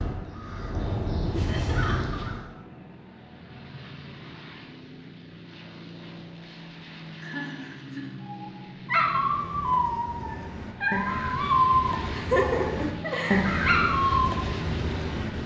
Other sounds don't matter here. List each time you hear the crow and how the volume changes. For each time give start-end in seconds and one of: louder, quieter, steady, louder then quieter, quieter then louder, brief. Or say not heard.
0.0-2.5 brief
9.1-15.4 louder then quieter.